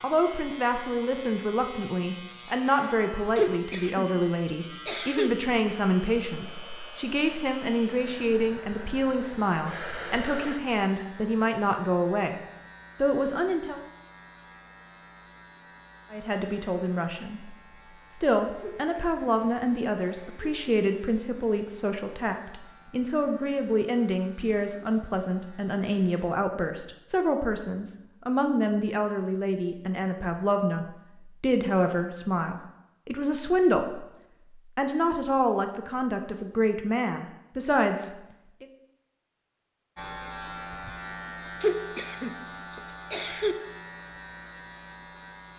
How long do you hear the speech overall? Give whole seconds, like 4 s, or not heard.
35 s.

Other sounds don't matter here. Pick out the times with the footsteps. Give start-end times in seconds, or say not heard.
not heard.